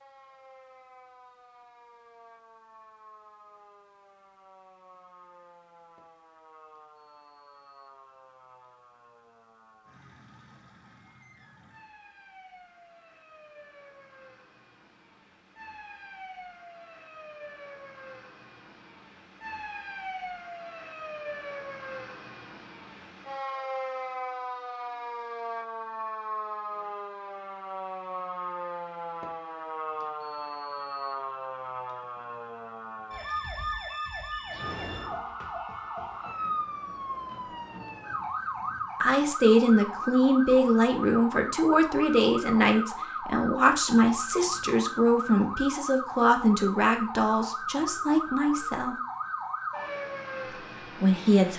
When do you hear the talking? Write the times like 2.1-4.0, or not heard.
39.0-49.0, 51.0-51.5.